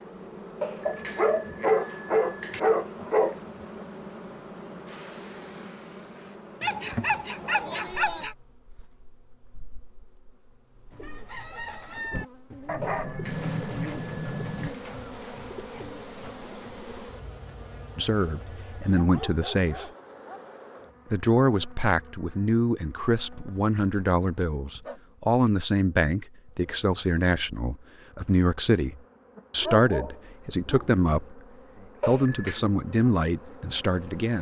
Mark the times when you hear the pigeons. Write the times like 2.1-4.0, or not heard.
10.9-17.1.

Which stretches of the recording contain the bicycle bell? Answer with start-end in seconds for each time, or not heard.
0.6-2.6, 12.8-14.8, 32.0-32.6.